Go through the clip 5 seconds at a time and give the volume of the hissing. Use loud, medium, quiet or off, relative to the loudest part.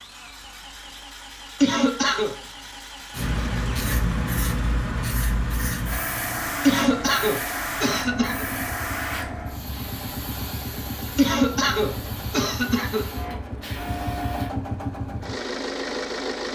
loud, loud, medium, off.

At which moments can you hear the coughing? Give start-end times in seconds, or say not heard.
1.6-2.4, 6.6-8.4, 11.2-13.1.